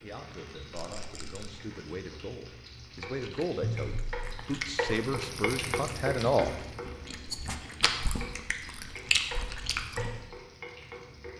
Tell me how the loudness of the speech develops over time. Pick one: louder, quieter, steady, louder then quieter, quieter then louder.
louder.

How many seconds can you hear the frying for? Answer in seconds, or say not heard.
11 s.